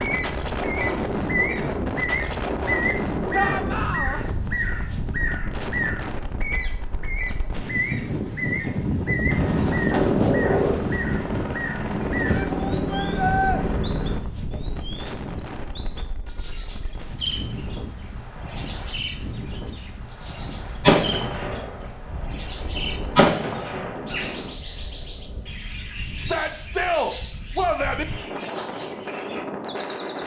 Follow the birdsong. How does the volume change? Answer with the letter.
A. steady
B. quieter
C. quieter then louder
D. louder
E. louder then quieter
B.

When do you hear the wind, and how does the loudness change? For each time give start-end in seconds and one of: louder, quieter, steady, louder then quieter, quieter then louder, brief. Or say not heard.
0.0-30.2 quieter.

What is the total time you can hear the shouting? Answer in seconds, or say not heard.
4 s.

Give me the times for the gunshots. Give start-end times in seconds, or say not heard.
8.8-10.8, 20.7-24.9.